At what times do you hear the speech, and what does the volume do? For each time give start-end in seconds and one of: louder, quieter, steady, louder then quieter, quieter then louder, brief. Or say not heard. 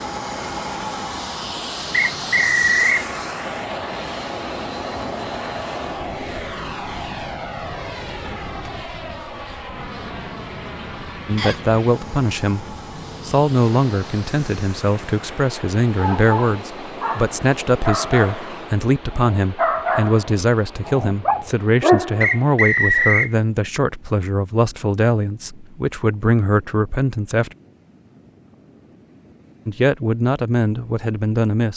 11.2-12.7 brief
13.2-27.5 steady
29.6-31.7 brief.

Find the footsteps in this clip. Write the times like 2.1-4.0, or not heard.
not heard.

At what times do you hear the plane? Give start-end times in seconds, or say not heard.
0.0-18.8.